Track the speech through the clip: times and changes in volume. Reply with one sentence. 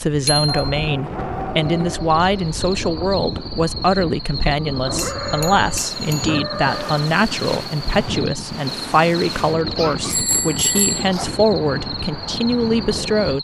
You can hear the speech from 0.0 to 13.3 s, at a steady volume.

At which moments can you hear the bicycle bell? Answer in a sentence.
The bicycle bell can be heard from 0.2 to 0.7 s, from 5.0 to 6.3 s and from 10.1 to 11.1 s.